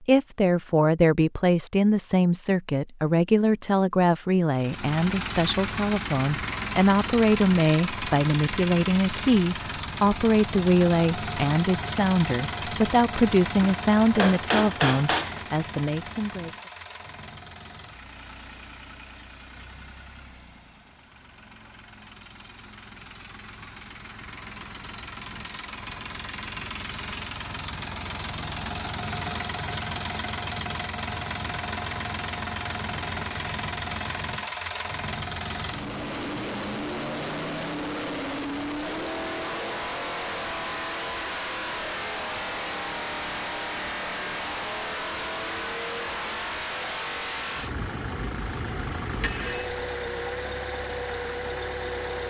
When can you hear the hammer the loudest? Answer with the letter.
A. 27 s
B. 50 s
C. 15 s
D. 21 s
C.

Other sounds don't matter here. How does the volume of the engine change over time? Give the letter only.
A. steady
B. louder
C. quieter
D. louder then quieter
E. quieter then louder
E.